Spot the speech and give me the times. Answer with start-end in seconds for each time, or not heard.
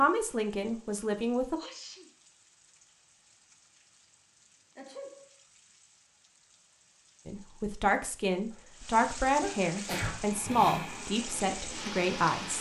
0.0-1.6, 7.2-12.5.